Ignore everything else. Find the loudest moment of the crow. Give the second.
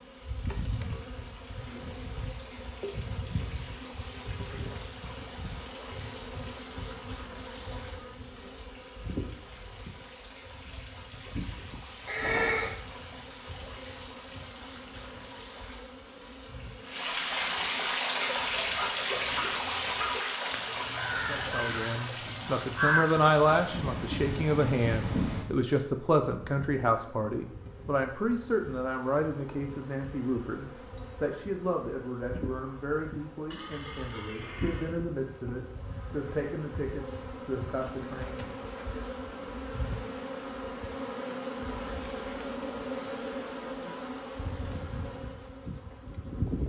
23 s.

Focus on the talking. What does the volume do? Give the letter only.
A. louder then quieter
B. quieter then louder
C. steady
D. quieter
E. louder
D.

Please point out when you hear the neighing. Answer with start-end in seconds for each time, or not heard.
12.1-12.7, 23.7-25.4, 33.5-35.0.